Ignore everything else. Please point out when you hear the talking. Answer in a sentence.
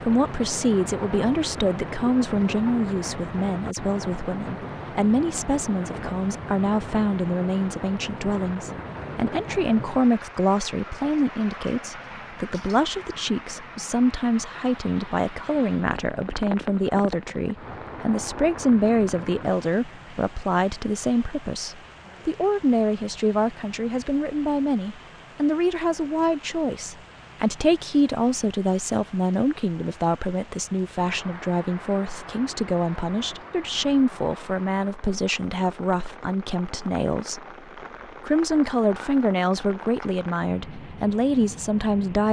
The talking can be heard from 0.0 to 37.4 s and from 38.2 to 42.2 s.